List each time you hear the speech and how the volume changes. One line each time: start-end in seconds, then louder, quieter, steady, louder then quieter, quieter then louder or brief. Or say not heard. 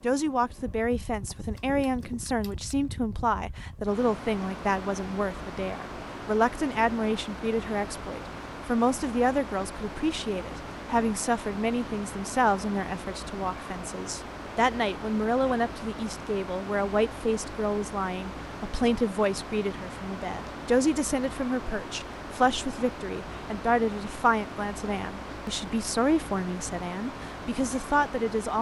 0.0-28.5 steady.